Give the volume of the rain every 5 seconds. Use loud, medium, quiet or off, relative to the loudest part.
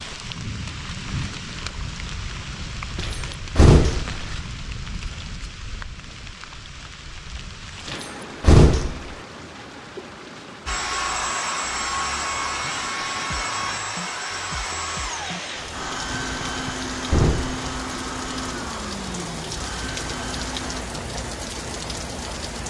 loud, medium, medium, loud, loud.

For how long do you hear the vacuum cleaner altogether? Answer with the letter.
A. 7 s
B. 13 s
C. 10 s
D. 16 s
C.